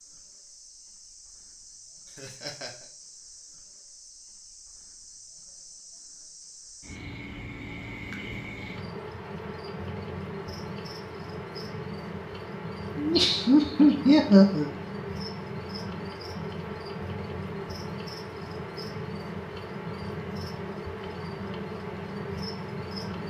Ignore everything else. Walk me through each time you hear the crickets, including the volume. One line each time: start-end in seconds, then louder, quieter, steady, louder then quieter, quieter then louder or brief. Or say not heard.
0.0-23.2 louder.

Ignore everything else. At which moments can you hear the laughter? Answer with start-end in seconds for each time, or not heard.
2.1-2.9, 12.9-14.7.